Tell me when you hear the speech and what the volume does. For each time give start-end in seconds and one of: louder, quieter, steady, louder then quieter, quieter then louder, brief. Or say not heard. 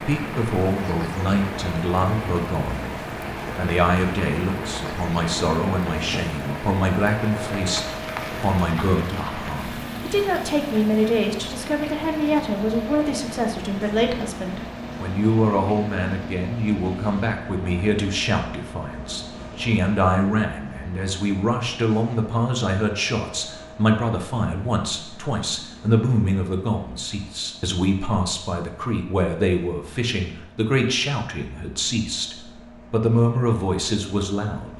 0.0-3.0 brief
3.5-34.7 steady.